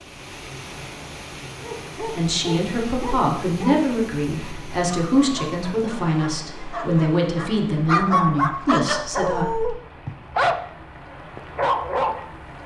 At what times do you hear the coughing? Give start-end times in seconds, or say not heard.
not heard.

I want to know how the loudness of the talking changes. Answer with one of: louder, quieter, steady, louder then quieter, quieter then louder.
steady.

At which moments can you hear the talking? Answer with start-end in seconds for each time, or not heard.
2.0-9.4.